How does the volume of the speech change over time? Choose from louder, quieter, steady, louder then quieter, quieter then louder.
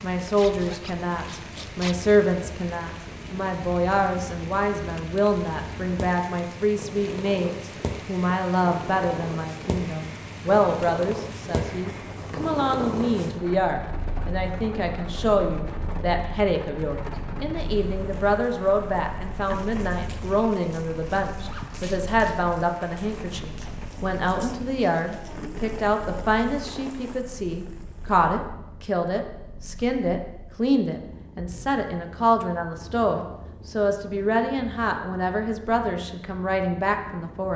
steady.